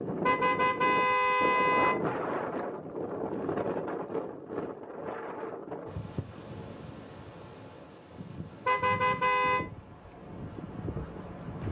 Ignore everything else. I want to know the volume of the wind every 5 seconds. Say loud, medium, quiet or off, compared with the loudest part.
loud, medium, medium.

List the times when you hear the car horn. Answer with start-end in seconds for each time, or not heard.
0.2-1.9, 8.7-9.7.